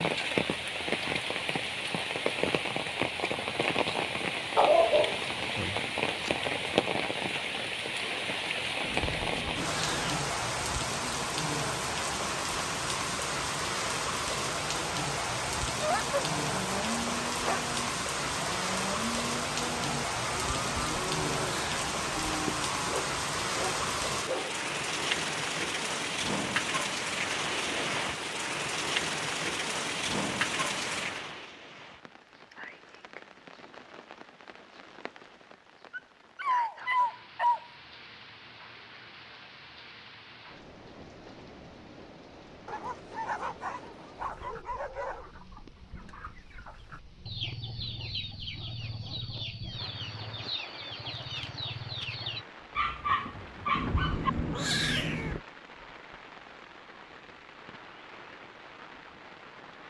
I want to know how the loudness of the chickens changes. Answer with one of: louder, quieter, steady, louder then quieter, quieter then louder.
louder.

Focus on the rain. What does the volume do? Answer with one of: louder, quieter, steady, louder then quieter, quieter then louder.
quieter.